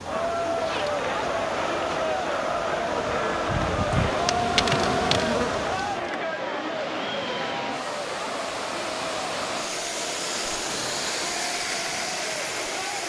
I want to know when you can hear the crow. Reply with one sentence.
The crow can't be heard in this clip.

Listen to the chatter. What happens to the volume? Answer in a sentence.
The volume of the chatter goes down.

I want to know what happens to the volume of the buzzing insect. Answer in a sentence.
The volume of the buzzing insect goes up.